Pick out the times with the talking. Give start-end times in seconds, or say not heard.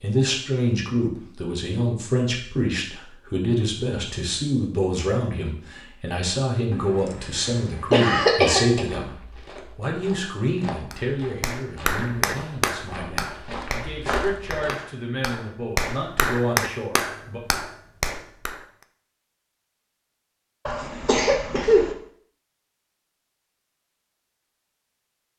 0.0-17.4.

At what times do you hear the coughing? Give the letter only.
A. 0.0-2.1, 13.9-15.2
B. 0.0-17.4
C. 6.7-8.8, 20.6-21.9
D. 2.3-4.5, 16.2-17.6
C.